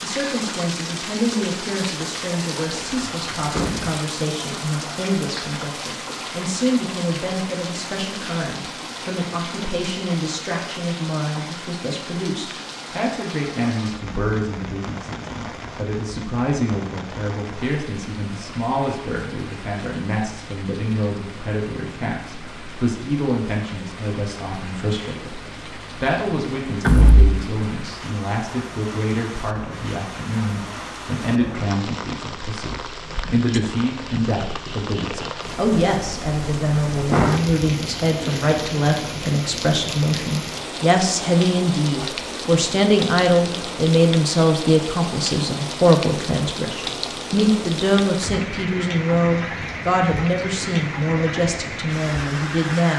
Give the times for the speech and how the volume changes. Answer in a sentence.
You can hear the speech from 0.0 to 52.9 s, getting louder.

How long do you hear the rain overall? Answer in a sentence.
The rain can be heard for 53 seconds in total.